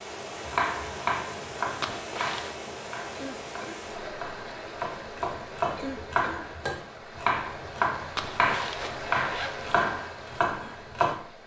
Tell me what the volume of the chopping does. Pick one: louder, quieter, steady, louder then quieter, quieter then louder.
quieter then louder.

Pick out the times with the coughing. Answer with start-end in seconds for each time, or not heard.
3.1-3.8, 5.8-6.5.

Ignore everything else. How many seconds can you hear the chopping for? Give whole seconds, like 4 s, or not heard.
11 s.